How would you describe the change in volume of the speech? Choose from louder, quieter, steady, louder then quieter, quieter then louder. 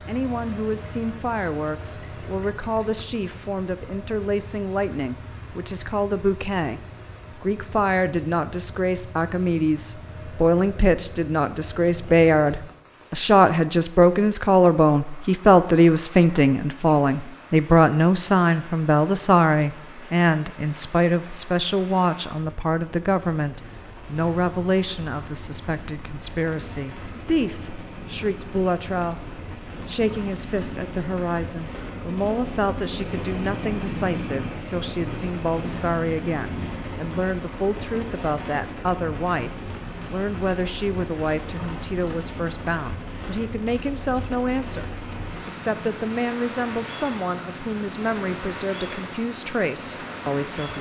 louder then quieter.